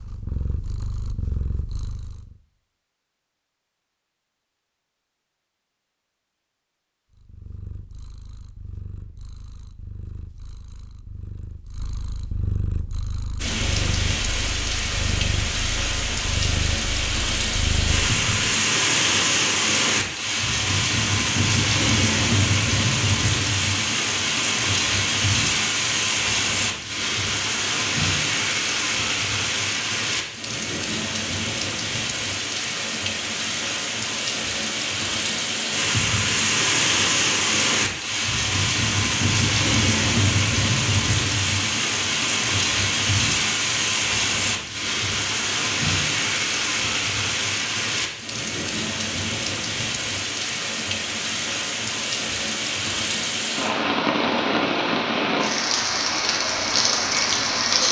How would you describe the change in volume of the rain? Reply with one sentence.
The volume of the rain stays about the same.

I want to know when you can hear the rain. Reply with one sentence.
The rain can be heard from 13.4 to 57.8 s.